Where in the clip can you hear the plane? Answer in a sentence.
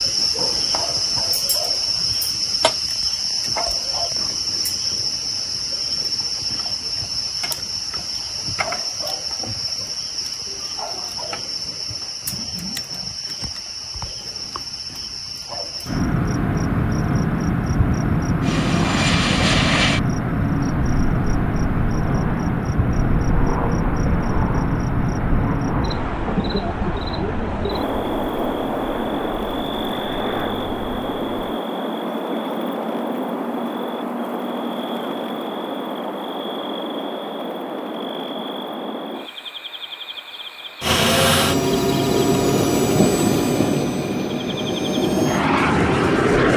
You can hear the plane from 18.4 to 31.6 s and from 40.8 to 46.5 s.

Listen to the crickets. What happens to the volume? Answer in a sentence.
The loudness of the crickets goes down.